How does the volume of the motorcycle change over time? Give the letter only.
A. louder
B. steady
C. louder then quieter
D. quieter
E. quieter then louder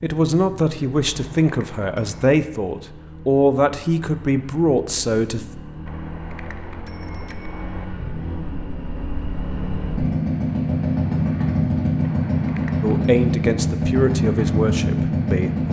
A.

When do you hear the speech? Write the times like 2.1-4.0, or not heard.
0.0-5.5, 12.8-15.6.